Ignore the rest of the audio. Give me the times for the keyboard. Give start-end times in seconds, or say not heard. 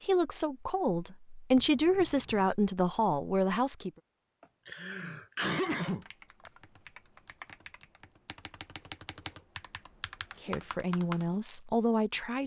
5.8-11.3.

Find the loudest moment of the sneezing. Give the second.
6 s.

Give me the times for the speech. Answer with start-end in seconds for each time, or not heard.
0.0-3.9, 10.4-12.4.